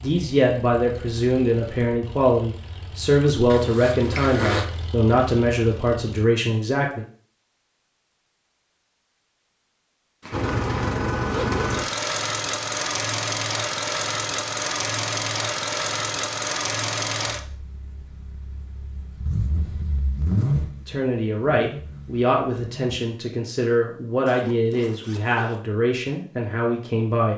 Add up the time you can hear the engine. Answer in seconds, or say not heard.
19 s.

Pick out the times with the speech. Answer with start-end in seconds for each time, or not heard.
0.0-7.0, 20.9-27.3.